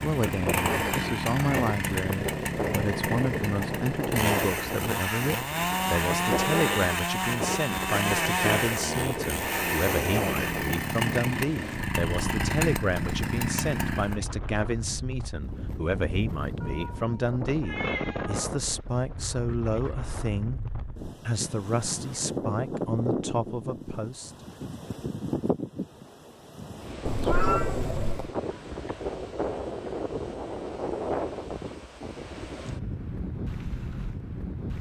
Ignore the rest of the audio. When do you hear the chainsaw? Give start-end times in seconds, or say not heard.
0.0-14.2.